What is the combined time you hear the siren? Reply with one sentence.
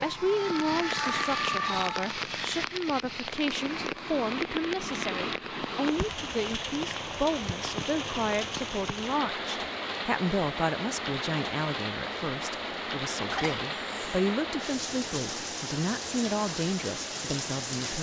The siren can be heard for 2 seconds in total.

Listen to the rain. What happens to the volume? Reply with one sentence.
The volume of the rain stays about the same.